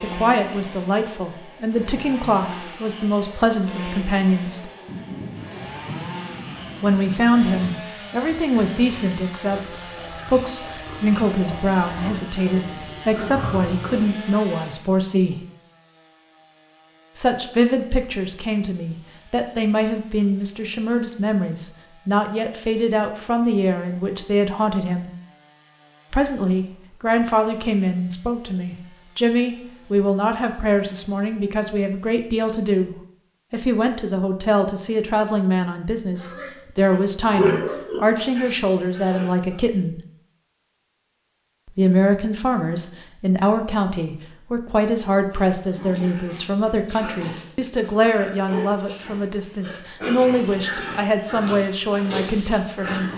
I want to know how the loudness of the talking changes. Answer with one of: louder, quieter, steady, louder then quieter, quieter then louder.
steady.